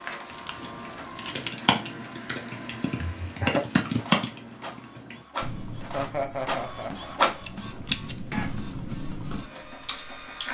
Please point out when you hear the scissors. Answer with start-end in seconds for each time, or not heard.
0.3-1.5, 7.5-8.5.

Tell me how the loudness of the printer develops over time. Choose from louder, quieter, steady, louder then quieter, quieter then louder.
louder then quieter.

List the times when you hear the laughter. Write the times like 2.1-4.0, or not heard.
3.0-3.6, 5.8-7.2.